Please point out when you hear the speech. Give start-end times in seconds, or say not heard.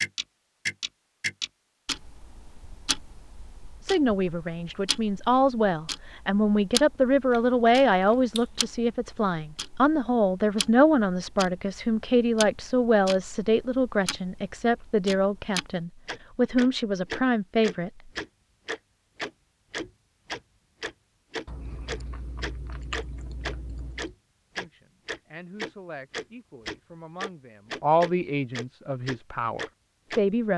3.9-17.9, 24.6-30.5.